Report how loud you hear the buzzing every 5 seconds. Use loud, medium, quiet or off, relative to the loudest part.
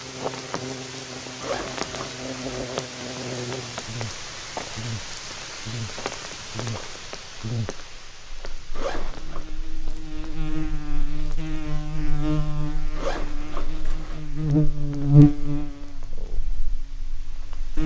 quiet, quiet, medium, loud.